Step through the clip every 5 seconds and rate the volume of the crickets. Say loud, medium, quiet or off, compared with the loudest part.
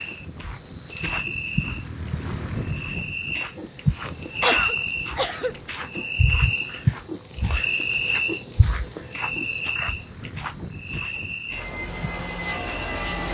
loud, loud, medium.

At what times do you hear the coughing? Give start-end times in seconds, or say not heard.
4.4-5.5.